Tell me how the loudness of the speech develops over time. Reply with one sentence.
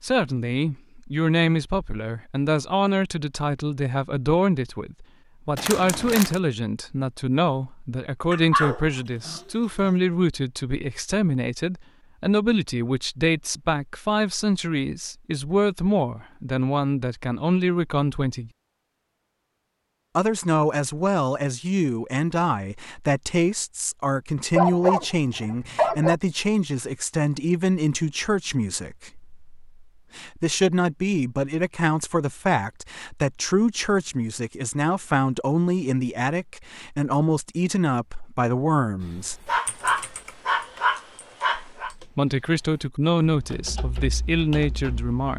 The volume of the speech stays about the same.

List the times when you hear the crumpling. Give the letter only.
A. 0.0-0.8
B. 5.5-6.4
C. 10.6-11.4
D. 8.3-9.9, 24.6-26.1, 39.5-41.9
B.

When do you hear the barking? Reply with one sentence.
The barking can be heard from 8.3 to 9.9 s, from 24.6 to 26.1 s and from 39.5 to 41.9 s.